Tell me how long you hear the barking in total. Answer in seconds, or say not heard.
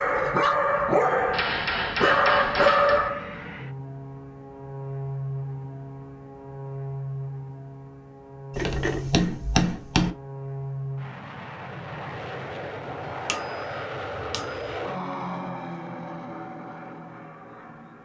3 s.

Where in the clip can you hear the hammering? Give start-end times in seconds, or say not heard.
1.3-3.1, 8.6-10.2, 13.2-14.7.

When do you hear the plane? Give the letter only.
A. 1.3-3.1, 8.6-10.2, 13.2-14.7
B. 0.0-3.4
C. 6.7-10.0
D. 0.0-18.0
D.